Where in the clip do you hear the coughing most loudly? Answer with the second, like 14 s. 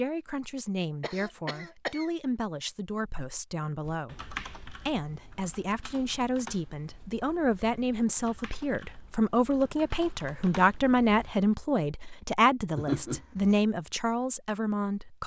13 s.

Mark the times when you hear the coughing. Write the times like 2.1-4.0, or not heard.
1.0-2.1, 12.8-13.6.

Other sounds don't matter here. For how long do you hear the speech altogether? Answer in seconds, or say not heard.
15 s.